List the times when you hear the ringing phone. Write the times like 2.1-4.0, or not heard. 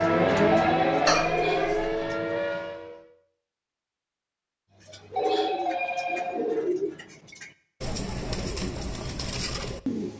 0.5-1.8, 5.2-6.7.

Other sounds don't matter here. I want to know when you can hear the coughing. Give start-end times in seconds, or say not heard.
1.1-1.9.